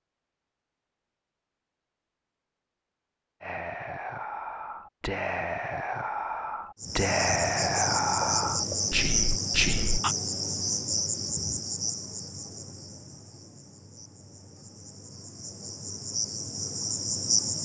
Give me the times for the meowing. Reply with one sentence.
You can't hear the meowing here.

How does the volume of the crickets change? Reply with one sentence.
The loudness of the crickets goes down, then up.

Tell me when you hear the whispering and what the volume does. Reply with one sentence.
You can hear the whispering from 3.4 to 10.2 s, getting louder.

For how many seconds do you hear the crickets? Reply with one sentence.
You can hear the crickets for 11 seconds altogether.